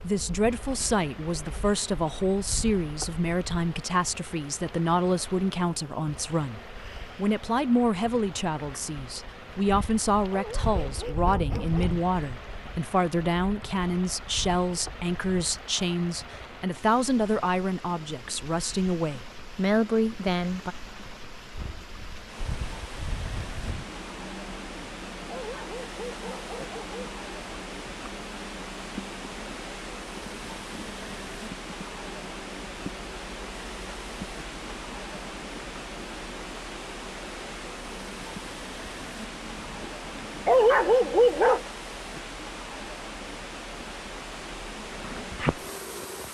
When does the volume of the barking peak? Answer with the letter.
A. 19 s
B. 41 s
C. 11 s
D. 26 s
B.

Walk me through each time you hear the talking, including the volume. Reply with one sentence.
The talking can be heard from 0.0 to 20.8 s, at a steady volume.